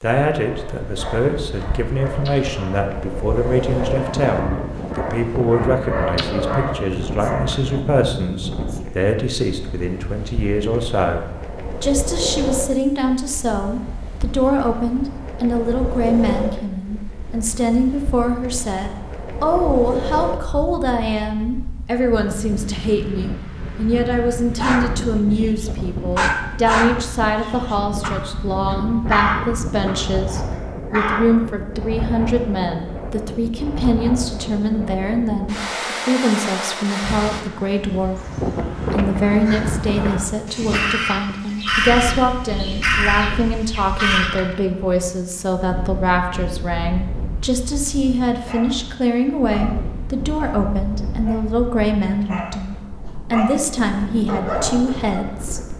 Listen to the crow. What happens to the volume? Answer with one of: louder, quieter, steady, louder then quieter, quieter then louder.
louder.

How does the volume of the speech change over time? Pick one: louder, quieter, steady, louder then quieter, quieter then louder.
steady.